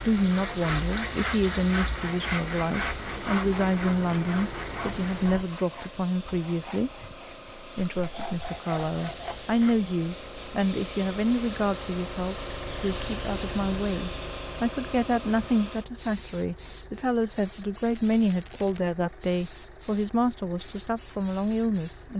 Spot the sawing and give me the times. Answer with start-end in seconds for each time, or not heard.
0.1-9.8.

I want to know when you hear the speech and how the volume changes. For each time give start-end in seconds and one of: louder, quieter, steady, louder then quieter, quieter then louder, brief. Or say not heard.
0.1-6.9 steady
7.5-22.1 steady.